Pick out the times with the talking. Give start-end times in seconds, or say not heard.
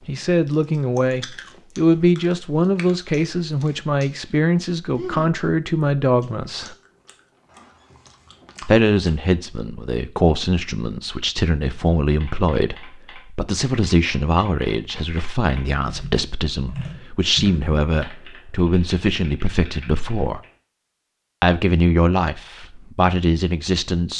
0.1-6.8, 8.6-20.4, 21.4-24.1.